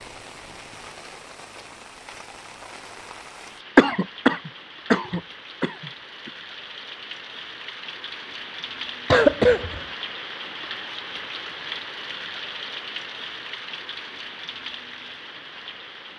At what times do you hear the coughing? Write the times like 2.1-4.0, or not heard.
3.8-6.3, 9.1-9.8.